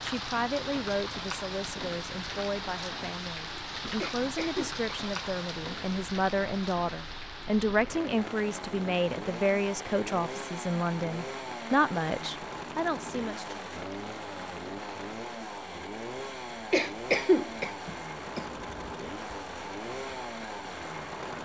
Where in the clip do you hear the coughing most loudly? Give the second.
17 s.